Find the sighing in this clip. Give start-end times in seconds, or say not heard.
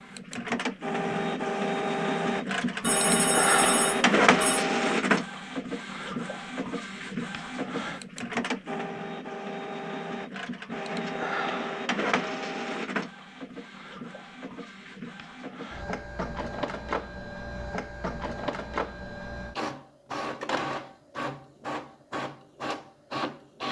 not heard.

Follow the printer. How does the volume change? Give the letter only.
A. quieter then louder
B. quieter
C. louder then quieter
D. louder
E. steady
B.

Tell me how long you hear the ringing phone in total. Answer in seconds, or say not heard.
2 s.